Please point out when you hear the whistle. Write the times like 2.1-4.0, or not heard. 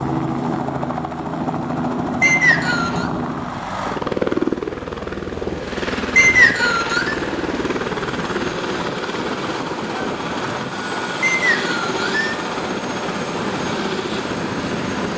2.2-3.1, 6.2-7.2, 11.2-12.3.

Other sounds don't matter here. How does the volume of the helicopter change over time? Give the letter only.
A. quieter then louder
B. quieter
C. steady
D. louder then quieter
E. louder
C.